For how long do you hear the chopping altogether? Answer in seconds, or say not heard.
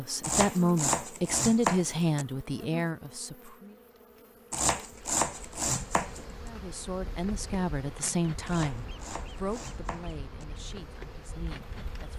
6 s.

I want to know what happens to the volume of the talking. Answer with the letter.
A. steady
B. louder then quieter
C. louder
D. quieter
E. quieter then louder
D.